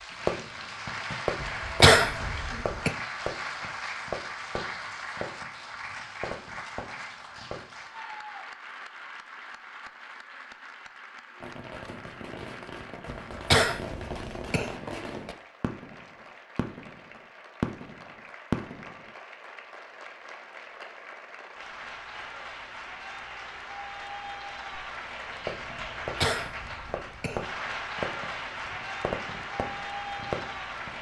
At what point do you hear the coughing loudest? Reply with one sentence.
The volume of the coughing peaks at 2 seconds.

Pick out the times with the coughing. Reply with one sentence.
The coughing can be heard from 1.4 to 2.9 s, from 13.1 to 14.8 s and from 26.0 to 27.4 s.